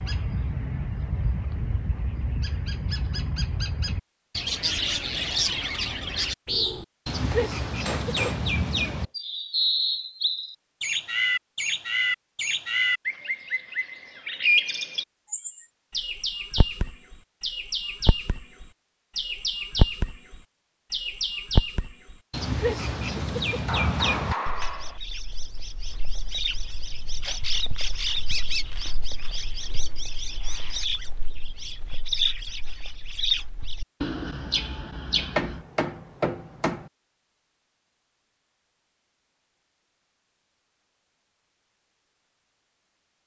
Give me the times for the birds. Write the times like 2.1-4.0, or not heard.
0.0-35.6.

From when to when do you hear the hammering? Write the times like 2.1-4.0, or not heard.
7.3-8.5, 23.6-25.0, 35.4-36.9.